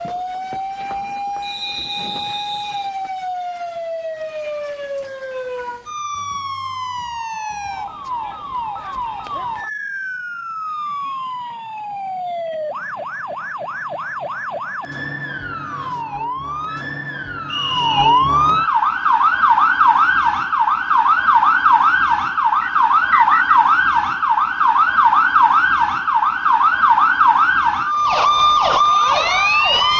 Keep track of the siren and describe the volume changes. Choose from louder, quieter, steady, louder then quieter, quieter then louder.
louder.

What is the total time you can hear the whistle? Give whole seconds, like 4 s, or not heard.
3 s.